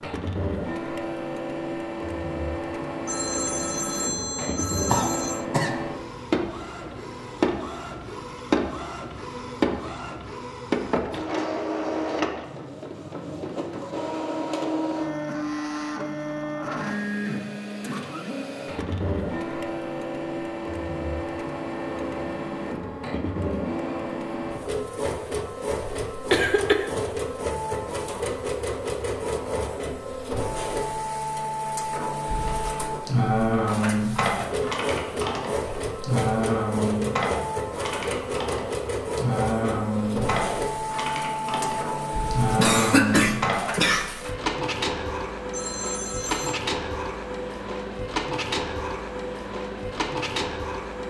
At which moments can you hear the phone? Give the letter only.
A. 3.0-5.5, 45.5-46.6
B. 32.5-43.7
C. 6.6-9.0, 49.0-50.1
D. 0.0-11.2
A.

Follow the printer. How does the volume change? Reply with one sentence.
The loudness of the printer stays about the same.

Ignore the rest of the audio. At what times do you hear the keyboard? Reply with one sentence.
The keyboard can be heard from 32.5 to 43.7 s.